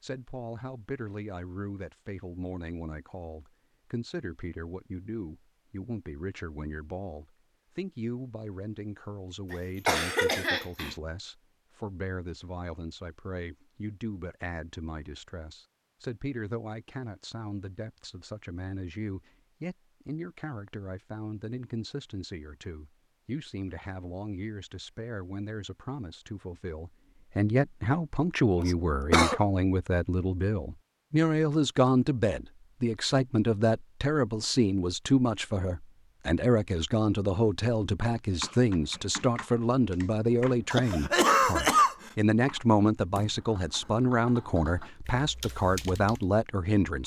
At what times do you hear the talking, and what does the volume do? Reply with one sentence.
The talking can be heard from 0.0 to 47.0 s, getting louder.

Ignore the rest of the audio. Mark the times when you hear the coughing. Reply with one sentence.
You can hear the coughing from 9.5 to 10.9 s, from 28.6 to 29.4 s and from 40.7 to 42.1 s.